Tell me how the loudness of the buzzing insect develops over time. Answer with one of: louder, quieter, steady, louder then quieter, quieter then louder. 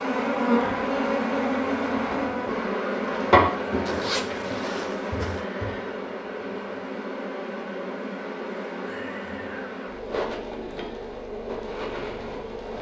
quieter.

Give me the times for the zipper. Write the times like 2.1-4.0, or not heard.
3.9-5.5.